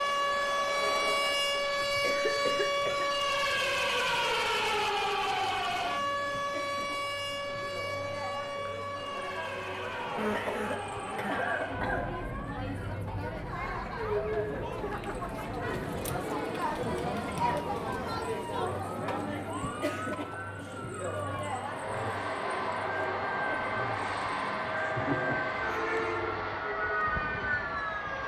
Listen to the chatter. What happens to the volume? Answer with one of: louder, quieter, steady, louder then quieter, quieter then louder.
louder then quieter.